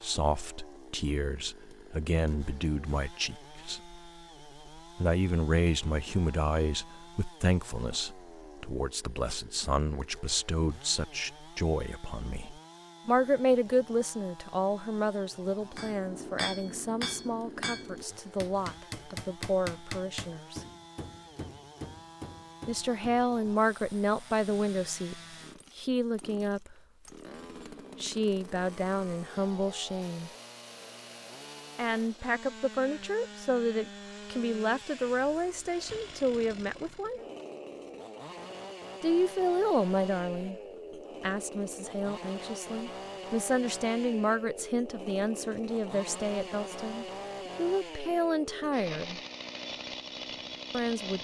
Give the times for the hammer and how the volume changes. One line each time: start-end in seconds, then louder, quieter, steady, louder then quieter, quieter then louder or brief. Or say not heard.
15.7-23.2 quieter.